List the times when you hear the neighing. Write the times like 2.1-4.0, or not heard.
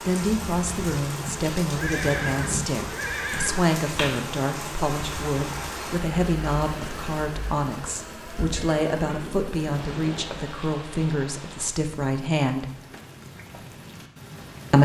1.8-3.6, 8.6-10.3.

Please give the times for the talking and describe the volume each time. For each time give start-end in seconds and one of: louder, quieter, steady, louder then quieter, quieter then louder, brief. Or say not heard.
0.1-12.7 steady.